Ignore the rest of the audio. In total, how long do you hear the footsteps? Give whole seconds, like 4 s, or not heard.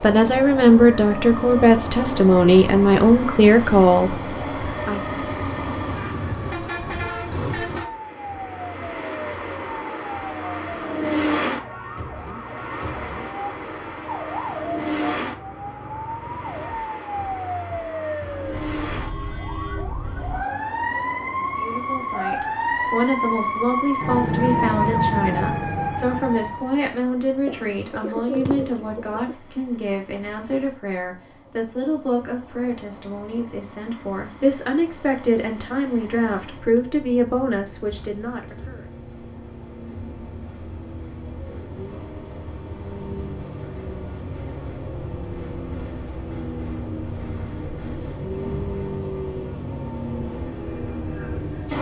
not heard.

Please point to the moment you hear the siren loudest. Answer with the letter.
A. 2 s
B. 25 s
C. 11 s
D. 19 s
B.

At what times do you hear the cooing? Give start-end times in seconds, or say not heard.
27.4-29.4.